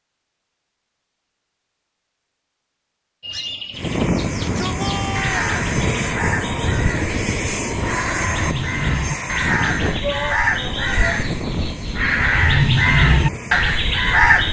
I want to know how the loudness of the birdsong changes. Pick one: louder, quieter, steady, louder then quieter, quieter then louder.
louder.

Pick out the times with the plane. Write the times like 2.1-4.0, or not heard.
3.7-14.4.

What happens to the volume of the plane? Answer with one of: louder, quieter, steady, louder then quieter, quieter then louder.
quieter.